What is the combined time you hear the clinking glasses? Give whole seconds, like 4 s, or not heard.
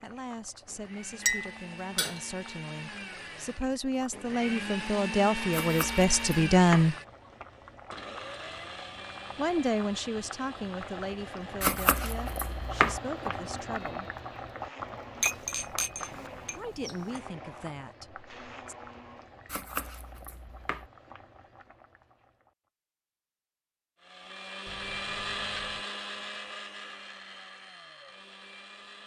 4 s.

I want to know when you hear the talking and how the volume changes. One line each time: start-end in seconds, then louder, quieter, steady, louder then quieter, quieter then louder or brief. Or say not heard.
0.0-7.0 louder
9.3-14.1 quieter
16.6-18.8 brief.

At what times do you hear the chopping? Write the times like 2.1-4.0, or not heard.
5.5-6.9, 11.6-13.0, 19.4-20.9.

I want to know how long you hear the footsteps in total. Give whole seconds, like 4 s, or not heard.
not heard.